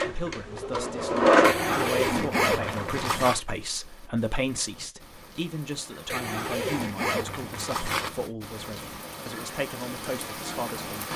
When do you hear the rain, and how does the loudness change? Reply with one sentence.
You can hear the rain from 3.4 to 11.1 s, getting louder.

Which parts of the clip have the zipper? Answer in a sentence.
You can hear the zipper from 1.4 to 3.4 s and from 6.1 to 8.1 s.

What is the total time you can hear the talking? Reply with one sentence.
The talking can be heard for 11 seconds in total.